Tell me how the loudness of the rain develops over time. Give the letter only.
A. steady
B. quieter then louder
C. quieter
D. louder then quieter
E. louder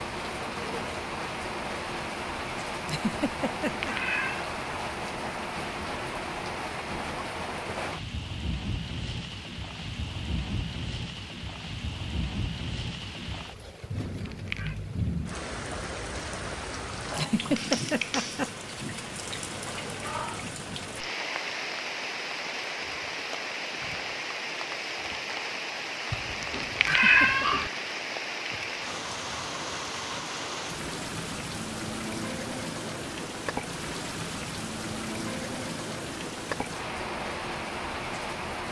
A.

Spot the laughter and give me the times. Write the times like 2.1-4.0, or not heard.
2.9-3.9, 17.1-18.5, 26.9-27.5.